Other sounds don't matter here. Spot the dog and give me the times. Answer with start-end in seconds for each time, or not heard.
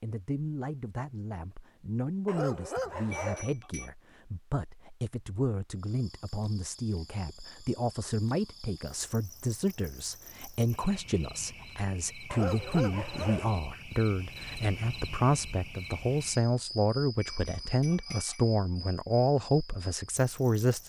2.2-3.5, 12.3-13.5.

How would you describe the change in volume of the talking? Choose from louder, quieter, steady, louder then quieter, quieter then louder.
louder.